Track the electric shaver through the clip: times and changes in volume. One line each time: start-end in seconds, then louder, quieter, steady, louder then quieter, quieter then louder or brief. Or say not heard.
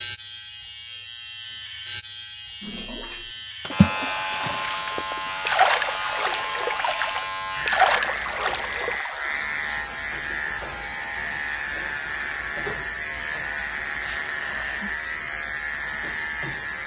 0.0-16.8 steady.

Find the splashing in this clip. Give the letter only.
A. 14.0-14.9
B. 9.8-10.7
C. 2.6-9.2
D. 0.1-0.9
C.